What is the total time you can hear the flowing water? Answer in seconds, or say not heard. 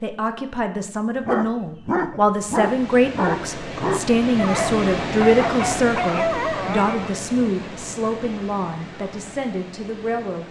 8 s.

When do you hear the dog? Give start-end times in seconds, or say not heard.
1.2-7.2.